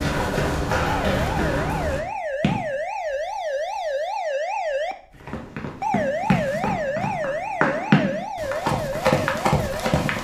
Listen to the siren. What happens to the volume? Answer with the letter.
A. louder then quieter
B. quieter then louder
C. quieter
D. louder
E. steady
E.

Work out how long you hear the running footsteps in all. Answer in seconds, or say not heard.
8 s.